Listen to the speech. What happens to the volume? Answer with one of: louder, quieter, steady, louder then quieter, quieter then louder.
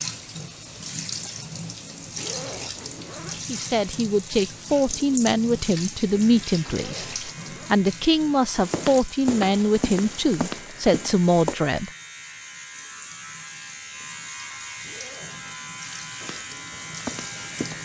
steady.